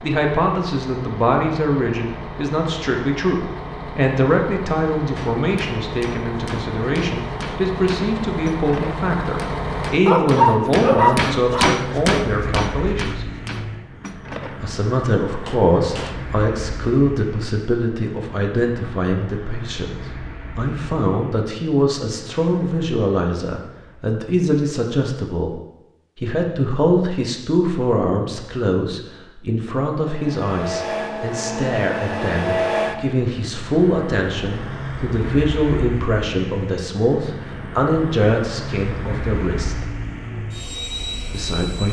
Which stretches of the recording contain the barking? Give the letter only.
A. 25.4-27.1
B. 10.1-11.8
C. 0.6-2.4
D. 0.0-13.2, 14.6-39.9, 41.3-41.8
B.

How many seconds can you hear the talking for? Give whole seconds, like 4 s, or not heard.
39 s.